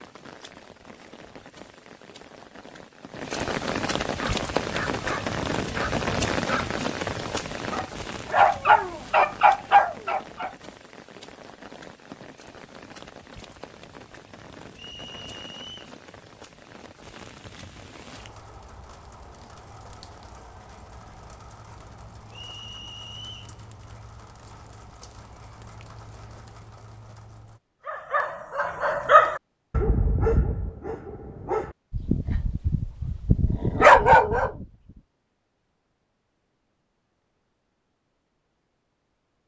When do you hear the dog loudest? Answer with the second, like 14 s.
34 s.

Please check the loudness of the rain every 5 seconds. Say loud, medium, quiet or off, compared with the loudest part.
loud, loud, quiet, quiet, quiet, quiet, off, off.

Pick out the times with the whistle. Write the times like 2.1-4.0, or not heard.
14.8-15.9, 22.3-23.6.